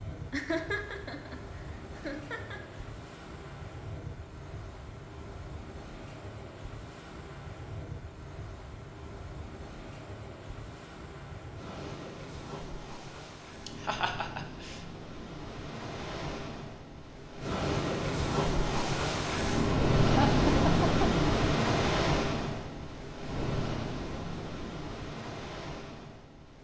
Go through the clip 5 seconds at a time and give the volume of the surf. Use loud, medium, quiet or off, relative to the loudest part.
quiet, quiet, quiet, loud, loud, quiet.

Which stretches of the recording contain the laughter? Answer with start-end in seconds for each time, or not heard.
0.3-2.6, 13.7-14.8, 20.1-21.4.